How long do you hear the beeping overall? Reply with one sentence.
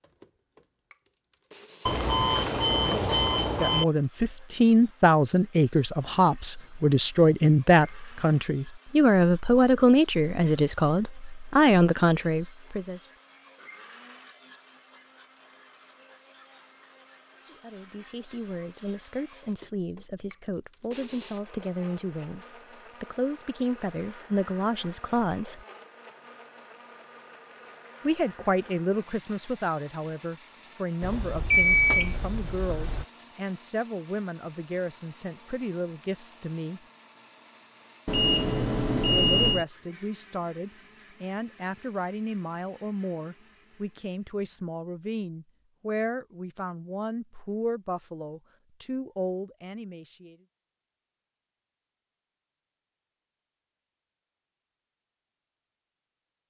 The beeping can be heard for 6 seconds in total.